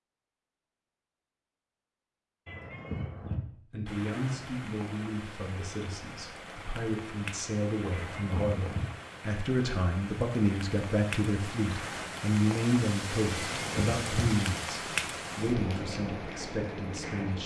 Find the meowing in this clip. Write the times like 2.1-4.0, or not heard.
2.5-3.4, 7.9-8.8, 13.3-14.2.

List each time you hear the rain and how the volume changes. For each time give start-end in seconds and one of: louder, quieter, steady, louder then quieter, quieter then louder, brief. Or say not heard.
3.9-17.4 louder.